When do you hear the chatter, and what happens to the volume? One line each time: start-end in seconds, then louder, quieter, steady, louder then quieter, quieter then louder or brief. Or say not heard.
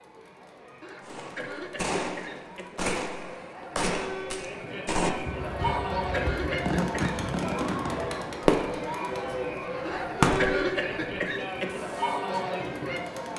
0.0-13.3 louder.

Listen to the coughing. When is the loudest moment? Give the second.
11 s.